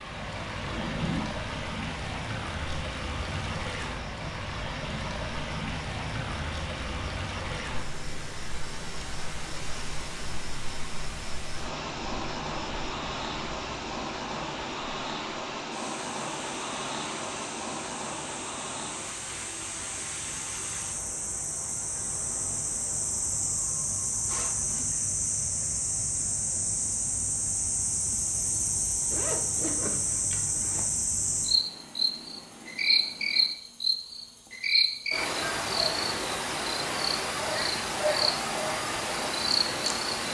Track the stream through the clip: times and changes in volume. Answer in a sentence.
You can hear the stream from 0.0 to 33.5 s, getting quieter.